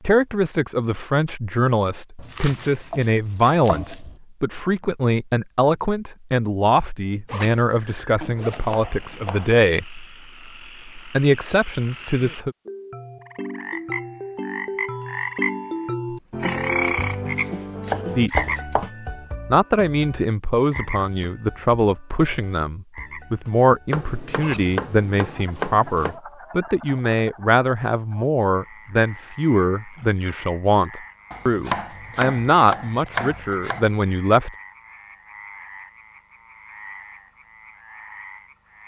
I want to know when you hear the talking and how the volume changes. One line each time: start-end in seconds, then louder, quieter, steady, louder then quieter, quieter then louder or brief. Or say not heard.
0.1-10.1 steady
10.9-12.6 brief
18.1-18.8 brief
19.5-34.5 steady.